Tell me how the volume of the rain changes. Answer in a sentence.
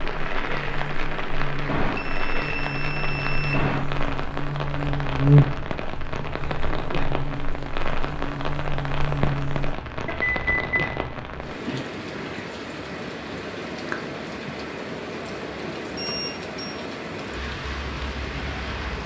The volume of the rain stays about the same.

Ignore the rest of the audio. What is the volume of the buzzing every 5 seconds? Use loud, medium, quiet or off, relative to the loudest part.
medium, loud, off, off.